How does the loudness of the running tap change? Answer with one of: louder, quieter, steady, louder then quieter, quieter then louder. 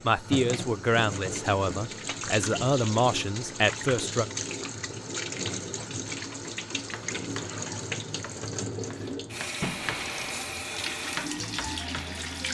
steady.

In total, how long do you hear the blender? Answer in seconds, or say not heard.
2 s.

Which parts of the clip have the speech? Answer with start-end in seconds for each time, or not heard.
0.0-4.2.